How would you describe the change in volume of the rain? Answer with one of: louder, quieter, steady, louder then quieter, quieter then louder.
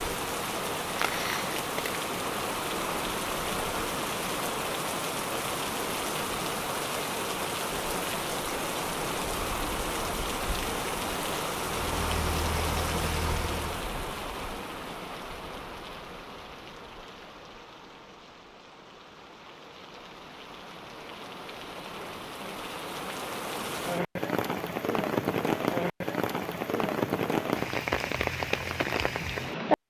quieter then louder.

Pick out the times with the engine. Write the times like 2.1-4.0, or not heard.
11.8-13.8.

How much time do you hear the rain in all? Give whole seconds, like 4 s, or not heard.
30 s.